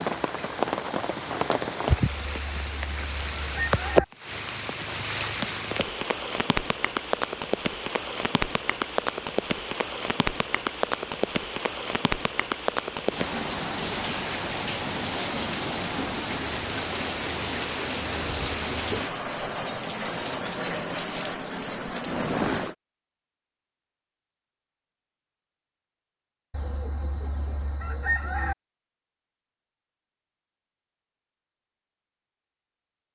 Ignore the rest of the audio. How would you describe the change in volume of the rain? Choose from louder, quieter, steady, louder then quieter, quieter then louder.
steady.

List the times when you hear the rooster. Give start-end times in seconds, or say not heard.
2.0-4.0, 26.5-28.6.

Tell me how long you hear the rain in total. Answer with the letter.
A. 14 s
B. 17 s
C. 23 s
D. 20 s
C.